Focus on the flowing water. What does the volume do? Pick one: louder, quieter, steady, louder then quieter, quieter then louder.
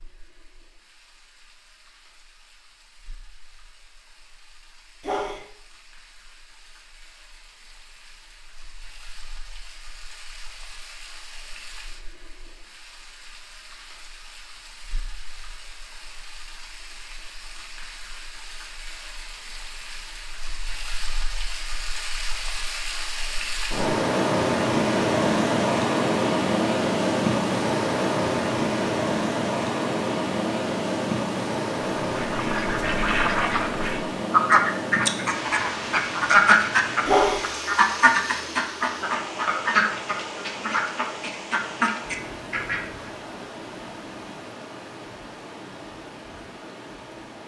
louder then quieter.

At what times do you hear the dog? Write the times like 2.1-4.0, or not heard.
5.0-5.4, 37.0-37.5.